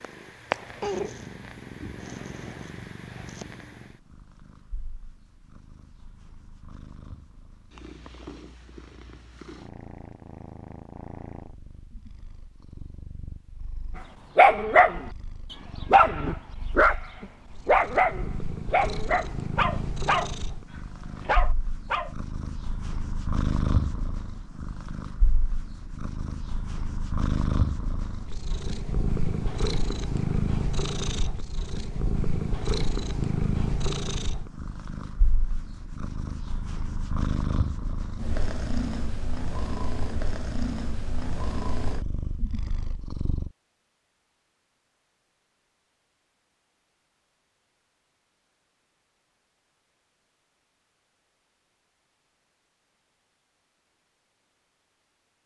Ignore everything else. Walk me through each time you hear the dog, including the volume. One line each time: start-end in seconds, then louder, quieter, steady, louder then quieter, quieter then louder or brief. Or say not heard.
14.3-20.4 quieter
21.2-22.1 brief.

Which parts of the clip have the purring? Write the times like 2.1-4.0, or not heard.
0.0-43.5.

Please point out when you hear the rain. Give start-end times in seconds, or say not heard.
not heard.